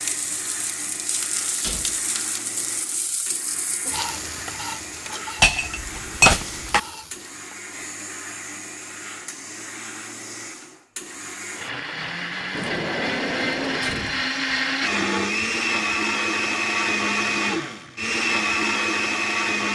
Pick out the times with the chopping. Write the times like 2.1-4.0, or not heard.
not heard.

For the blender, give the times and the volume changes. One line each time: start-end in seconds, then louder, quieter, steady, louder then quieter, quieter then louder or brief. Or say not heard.
0.0-19.7 louder.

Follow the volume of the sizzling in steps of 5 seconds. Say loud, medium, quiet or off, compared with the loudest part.
loud, medium, off, off.